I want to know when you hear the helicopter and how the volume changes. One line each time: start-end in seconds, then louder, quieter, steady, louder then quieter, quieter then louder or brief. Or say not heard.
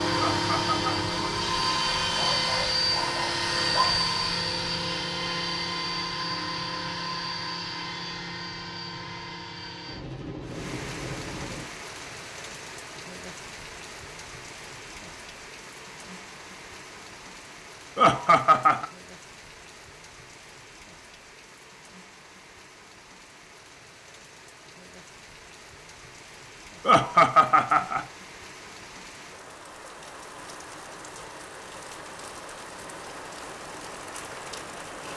0.0-11.7 quieter.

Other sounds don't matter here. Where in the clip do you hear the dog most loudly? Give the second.
4 s.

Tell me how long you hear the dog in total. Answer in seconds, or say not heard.
2 s.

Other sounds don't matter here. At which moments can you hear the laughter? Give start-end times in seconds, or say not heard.
0.1-0.9, 17.9-18.9, 26.9-28.1.